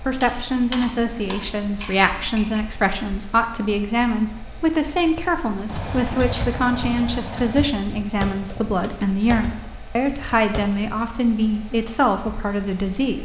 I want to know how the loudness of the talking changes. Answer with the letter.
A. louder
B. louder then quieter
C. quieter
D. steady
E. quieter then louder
D.